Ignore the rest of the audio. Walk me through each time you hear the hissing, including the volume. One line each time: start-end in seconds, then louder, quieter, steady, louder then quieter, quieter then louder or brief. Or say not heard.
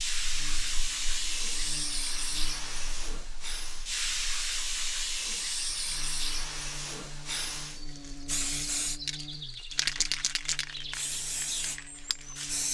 0.0-12.6 steady.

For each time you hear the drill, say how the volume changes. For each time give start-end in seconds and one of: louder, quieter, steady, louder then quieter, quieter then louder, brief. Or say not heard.
not heard.